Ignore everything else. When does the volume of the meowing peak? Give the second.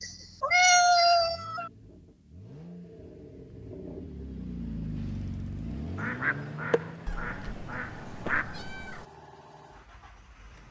1 s.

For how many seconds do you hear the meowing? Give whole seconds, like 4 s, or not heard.
4 s.